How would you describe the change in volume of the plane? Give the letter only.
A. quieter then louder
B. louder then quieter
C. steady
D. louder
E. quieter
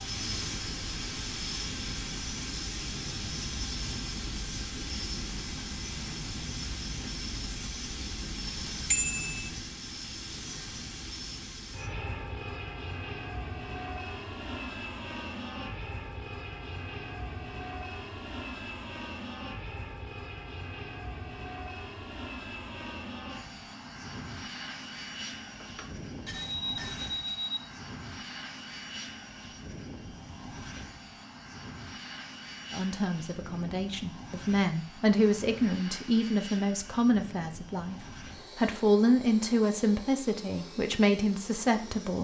E.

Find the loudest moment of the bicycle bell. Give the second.
9 s.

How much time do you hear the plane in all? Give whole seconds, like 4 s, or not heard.
42 s.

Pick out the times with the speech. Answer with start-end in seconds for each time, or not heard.
32.7-42.1.